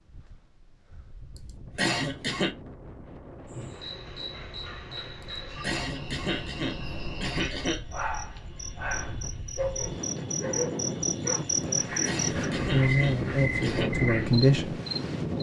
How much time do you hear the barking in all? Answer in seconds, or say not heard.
8 s.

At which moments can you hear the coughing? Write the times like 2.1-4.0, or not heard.
1.8-2.5, 5.6-7.8, 12.1-13.9.